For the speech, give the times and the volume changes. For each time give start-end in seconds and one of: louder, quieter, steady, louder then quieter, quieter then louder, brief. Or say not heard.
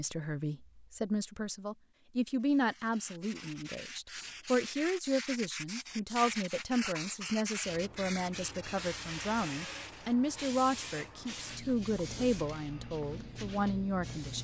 0.0-14.3 steady.